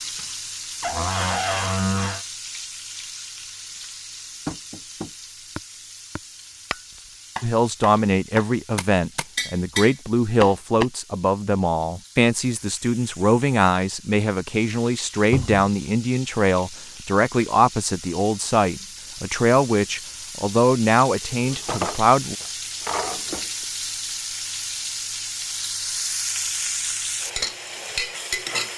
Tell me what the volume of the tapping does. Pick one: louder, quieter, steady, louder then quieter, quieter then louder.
louder.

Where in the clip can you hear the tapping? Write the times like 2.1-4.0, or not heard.
4.5-10.8.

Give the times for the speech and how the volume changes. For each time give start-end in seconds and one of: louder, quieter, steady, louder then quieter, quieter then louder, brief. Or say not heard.
7.4-22.4 steady.